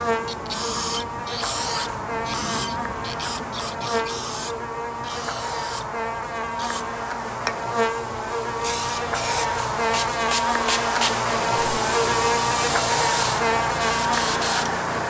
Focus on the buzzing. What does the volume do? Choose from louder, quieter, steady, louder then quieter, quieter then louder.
louder.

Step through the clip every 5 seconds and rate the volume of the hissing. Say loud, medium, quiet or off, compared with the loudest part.
loud, medium, loud.